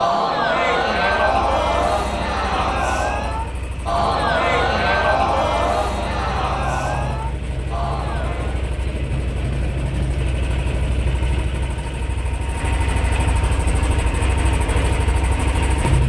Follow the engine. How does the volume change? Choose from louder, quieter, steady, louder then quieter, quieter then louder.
louder.